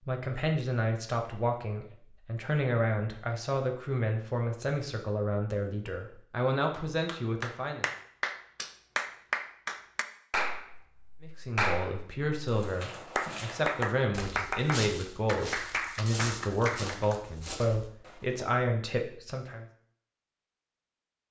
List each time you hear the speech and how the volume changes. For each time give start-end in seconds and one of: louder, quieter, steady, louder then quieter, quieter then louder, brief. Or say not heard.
0.1-7.8 steady
11.2-19.6 steady.